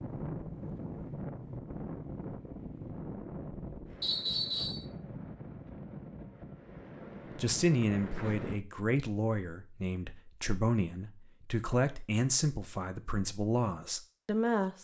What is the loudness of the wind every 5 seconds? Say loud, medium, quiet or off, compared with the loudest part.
loud, loud, off.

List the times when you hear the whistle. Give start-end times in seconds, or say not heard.
4.0-4.8.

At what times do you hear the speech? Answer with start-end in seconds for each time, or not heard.
7.3-14.7.